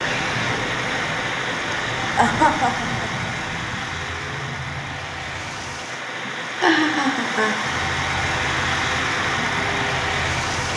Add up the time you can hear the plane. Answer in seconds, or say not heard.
9 s.